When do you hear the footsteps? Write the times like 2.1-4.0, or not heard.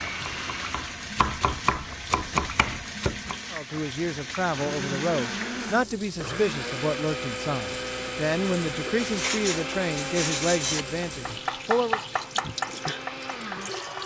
not heard.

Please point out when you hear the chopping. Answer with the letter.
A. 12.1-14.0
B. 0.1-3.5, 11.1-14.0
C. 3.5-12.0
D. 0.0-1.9
B.